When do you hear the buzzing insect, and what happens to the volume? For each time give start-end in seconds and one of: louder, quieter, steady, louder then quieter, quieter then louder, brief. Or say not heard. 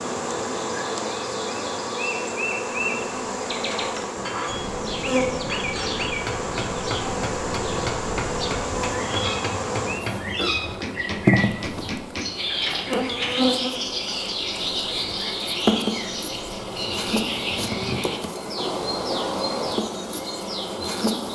0.0-21.3 steady.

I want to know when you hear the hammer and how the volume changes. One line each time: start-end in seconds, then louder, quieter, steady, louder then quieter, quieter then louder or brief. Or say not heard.
3.8-13.4 steady.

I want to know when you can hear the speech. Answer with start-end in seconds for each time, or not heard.
not heard.